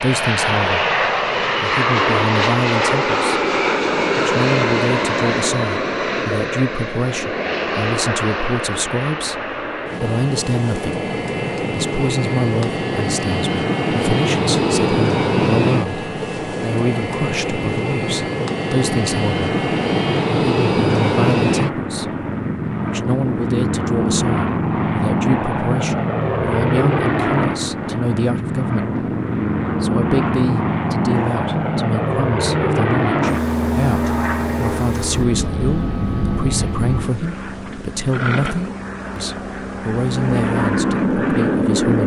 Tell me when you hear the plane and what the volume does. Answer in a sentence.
The plane can be heard from 0.0 to 42.0 s, at a steady volume.